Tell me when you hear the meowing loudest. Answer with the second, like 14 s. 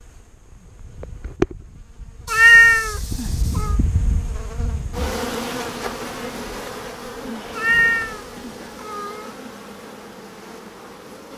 3 s.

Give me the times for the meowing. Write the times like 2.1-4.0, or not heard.
2.2-3.8, 7.5-9.3.